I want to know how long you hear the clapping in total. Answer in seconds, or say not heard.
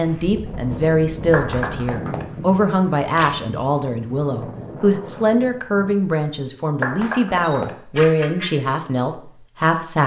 2 s.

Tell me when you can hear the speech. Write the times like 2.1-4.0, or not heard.
0.0-10.0.